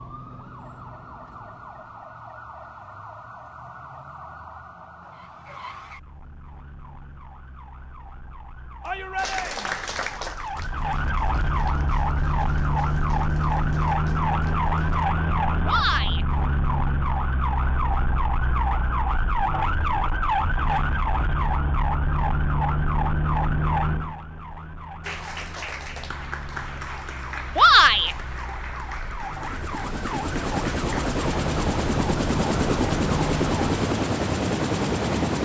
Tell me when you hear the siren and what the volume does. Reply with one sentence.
The siren can be heard from 0.0 to 33.8 s, getting louder then quieter.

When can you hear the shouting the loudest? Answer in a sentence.
The volume of the shouting peaks at 28 seconds.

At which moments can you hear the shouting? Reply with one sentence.
The shouting can be heard from 8.8 to 9.8 s, from 15.7 to 16.2 s and from 27.6 to 28.1 s.